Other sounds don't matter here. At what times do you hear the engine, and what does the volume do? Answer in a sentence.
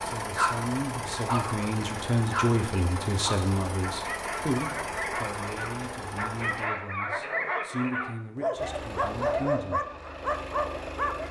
The engine can be heard from 0.0 to 6.7 s, at a steady volume; and briefly from 8.5 to 11.2 s.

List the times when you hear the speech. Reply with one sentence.
You can hear the speech from 0.0 to 9.8 s.